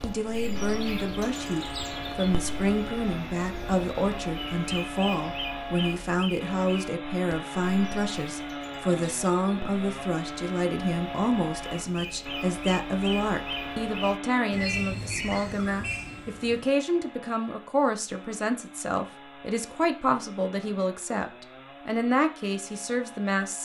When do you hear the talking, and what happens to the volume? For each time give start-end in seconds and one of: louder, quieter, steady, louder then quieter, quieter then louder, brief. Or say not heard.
0.0-23.6 steady.